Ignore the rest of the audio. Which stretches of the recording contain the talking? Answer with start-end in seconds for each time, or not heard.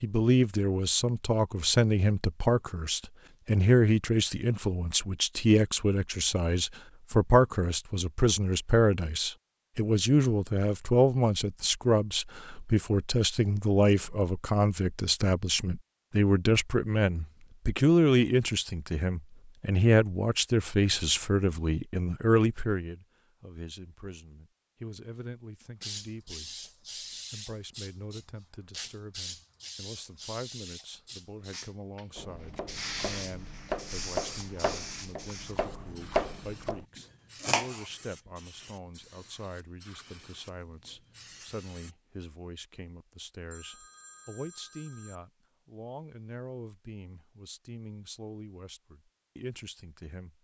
0.0-50.3.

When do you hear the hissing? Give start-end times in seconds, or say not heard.
25.8-42.0.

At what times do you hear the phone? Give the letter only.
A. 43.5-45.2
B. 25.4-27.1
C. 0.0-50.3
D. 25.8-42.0
A.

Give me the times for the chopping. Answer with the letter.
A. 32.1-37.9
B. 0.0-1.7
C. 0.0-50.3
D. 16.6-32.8
A.